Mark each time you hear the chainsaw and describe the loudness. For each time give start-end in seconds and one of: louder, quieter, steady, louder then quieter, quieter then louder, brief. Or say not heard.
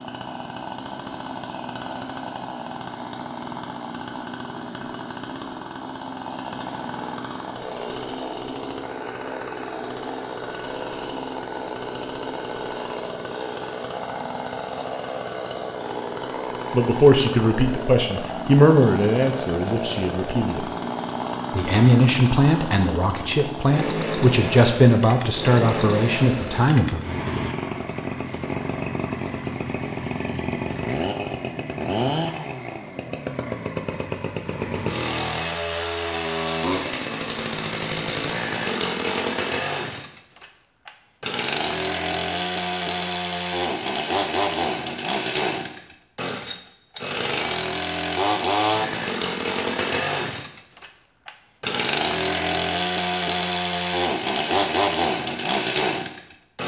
0.0-56.6 louder.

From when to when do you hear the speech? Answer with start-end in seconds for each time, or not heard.
16.7-20.6, 21.6-27.0.